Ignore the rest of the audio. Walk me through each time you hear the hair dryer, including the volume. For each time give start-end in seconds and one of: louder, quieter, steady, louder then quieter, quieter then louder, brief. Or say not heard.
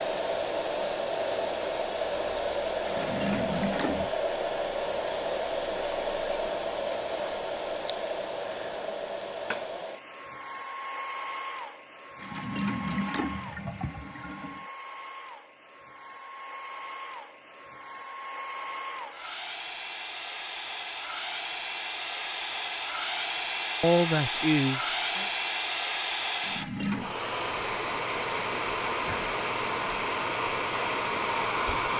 0.0-31.9 quieter then louder.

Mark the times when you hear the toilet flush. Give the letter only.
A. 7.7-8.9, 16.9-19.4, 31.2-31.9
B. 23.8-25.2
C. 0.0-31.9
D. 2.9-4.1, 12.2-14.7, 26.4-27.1
D.